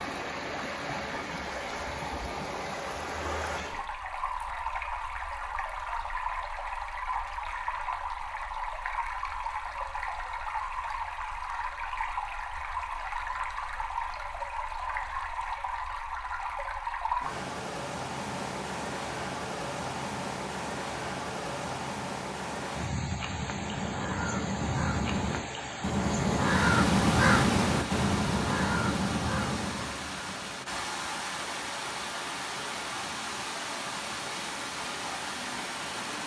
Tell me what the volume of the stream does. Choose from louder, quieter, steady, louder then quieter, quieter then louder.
steady.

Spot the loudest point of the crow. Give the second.
27 s.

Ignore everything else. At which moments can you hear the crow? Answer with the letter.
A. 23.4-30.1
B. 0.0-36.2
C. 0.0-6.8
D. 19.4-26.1
A.